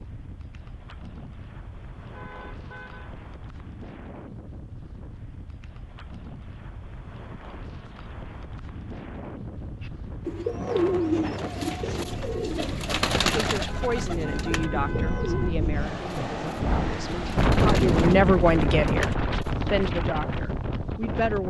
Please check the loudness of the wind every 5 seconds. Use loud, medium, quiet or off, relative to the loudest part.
quiet, quiet, medium, loud, medium.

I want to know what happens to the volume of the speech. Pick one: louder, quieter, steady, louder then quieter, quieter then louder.
louder then quieter.